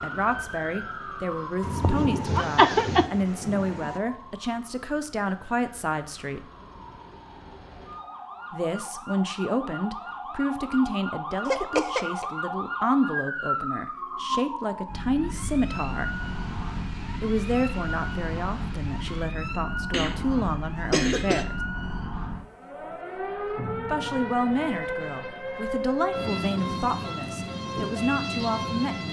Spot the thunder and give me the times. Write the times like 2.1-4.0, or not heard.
1.6-4.0, 15.6-19.2.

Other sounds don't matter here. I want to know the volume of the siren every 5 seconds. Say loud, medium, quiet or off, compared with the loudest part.
medium, medium, loud, loud, loud, loud.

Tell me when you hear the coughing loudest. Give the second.
3 s.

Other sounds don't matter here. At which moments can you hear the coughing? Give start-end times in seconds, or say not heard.
1.8-3.0, 11.4-12.2, 19.9-21.4.